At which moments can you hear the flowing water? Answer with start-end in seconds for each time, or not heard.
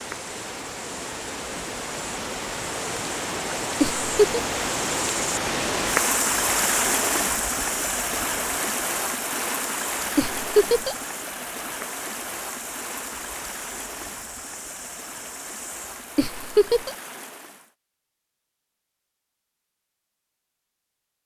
0.0-17.8.